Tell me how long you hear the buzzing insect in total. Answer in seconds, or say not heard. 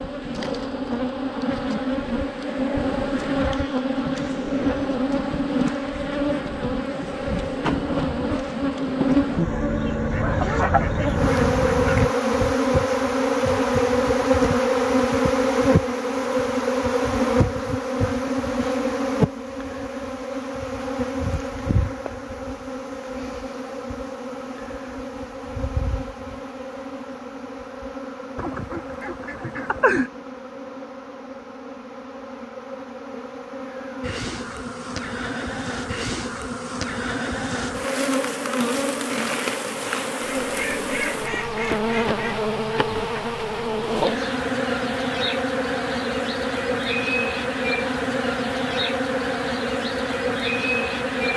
51 s.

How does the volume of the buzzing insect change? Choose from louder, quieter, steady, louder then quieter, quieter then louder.
quieter then louder.